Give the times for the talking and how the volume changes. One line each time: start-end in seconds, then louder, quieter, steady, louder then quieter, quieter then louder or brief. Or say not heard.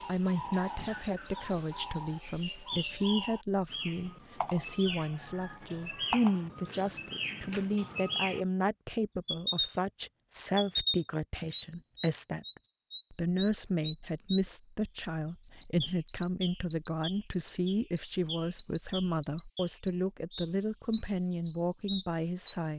0.1-22.7 steady.